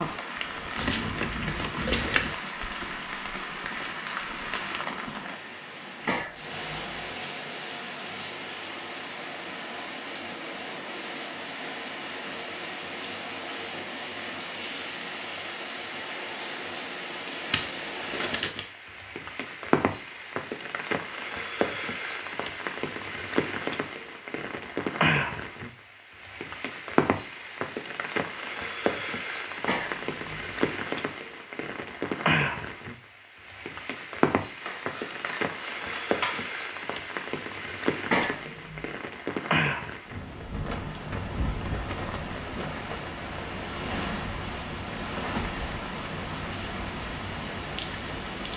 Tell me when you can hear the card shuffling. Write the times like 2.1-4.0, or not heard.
0.8-2.4, 17.5-18.6, 34.6-36.5.